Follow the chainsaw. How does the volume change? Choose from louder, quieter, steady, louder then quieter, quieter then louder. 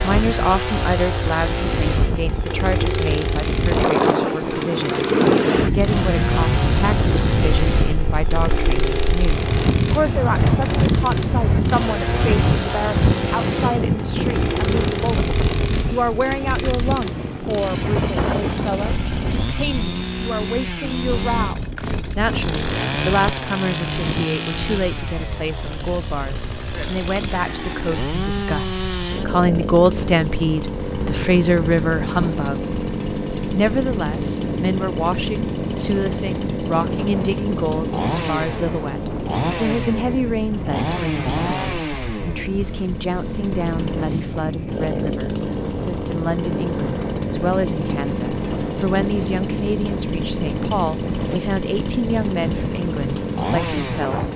steady.